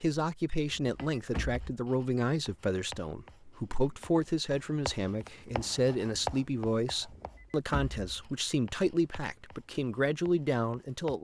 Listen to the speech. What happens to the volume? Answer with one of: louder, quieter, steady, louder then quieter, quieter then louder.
steady.